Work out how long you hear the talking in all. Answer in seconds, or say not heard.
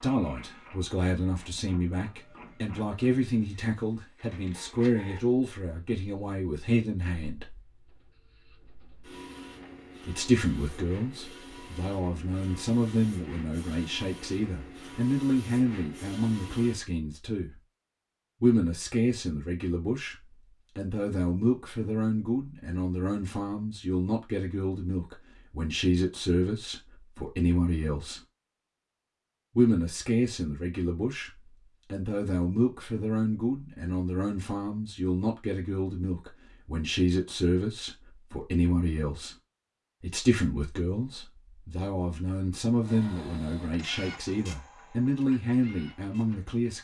41 s.